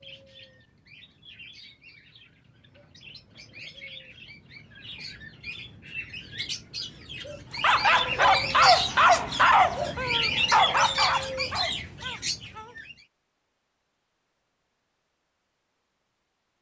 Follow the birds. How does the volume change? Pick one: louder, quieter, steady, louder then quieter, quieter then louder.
louder.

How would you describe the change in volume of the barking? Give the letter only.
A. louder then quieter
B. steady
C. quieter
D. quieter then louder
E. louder
C.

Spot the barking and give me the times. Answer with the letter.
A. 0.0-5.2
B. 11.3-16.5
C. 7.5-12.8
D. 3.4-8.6
C.